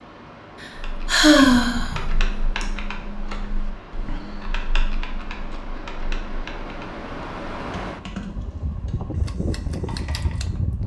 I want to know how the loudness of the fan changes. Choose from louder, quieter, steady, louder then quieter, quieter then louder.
louder.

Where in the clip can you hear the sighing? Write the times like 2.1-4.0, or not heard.
0.6-2.6.